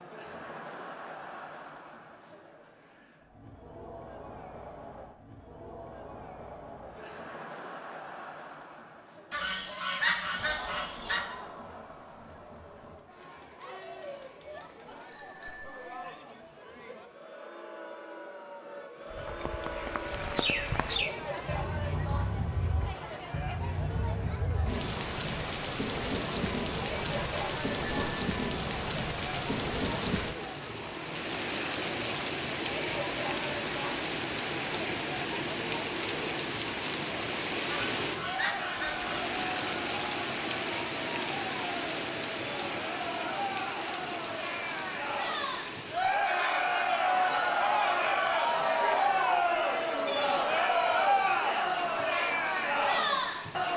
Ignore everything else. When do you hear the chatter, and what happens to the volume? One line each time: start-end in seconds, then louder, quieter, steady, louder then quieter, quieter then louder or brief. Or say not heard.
0.0-53.7 louder.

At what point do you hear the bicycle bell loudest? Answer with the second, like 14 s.
28 s.